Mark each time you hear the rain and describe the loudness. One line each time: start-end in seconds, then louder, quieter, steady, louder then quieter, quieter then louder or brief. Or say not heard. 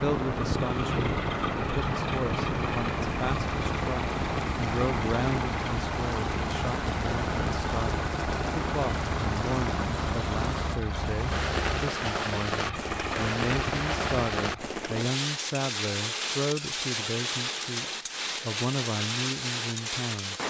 0.0-20.4 steady.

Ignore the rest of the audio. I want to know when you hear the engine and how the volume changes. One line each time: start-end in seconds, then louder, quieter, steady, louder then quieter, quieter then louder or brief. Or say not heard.
0.2-14.7 steady.